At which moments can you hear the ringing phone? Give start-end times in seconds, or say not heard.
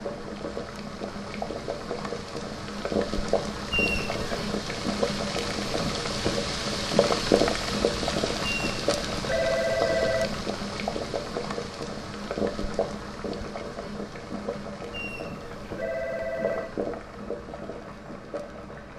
3.7-4.5, 8.4-10.4, 14.9-16.8.